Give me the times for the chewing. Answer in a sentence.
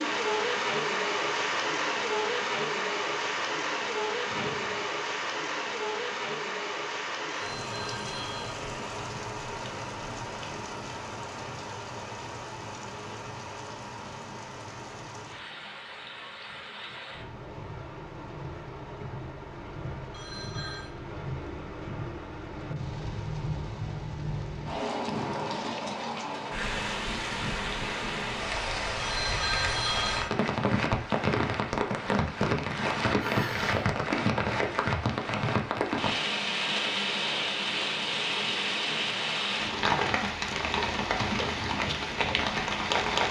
You can't hear the chewing here.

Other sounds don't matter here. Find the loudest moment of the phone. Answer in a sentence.
The loudest moment of the phone is at 30 seconds.